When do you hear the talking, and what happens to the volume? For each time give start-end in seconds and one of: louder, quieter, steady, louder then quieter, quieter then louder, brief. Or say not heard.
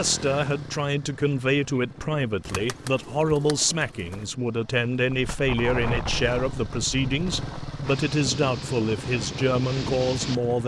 0.0-10.6 steady.